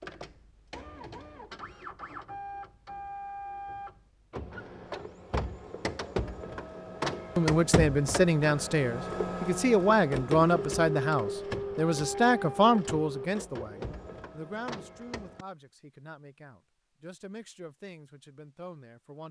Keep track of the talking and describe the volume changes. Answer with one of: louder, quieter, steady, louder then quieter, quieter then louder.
quieter.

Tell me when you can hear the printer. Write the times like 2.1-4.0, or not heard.
0.0-15.4.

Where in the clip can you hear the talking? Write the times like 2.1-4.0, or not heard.
7.3-19.2.